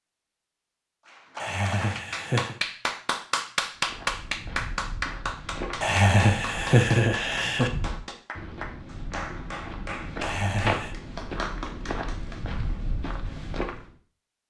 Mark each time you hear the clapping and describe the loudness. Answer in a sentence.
You can hear the clapping from 1.1 to 12.4 s, getting quieter.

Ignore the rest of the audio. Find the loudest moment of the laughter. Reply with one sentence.
The loudest moment of the laughter is at 7 seconds.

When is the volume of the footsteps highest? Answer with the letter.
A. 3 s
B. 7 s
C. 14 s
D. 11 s
D.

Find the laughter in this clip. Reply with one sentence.
The laughter can be heard from 1.4 to 2.6 s, from 5.8 to 7.7 s and from 10.2 to 10.9 s.